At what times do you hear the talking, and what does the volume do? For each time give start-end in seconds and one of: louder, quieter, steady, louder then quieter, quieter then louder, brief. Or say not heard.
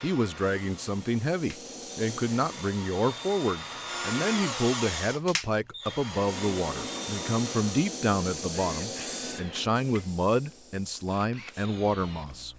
0.0-12.5 steady.